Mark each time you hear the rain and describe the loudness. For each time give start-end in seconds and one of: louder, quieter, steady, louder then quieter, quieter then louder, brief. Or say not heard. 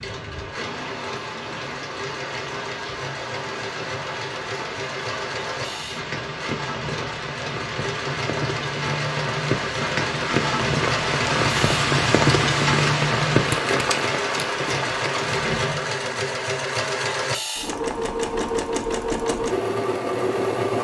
0.0-15.9 louder.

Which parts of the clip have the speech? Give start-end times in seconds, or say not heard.
not heard.